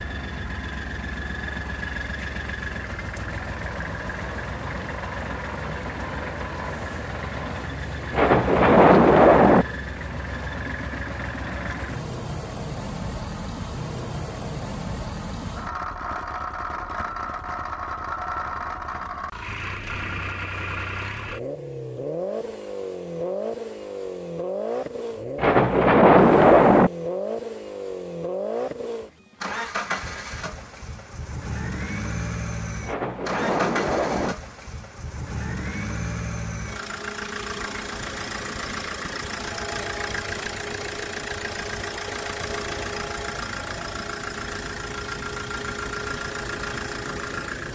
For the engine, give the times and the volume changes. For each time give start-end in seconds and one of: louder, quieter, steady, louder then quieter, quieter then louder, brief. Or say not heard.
0.0-47.6 steady.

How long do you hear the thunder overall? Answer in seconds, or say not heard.
5 s.